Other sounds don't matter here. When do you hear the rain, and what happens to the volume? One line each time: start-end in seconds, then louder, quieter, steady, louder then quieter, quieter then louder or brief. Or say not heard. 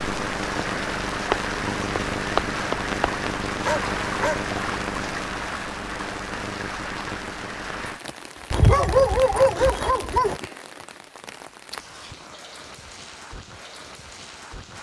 0.0-14.7 quieter.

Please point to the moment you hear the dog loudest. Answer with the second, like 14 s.
9 s.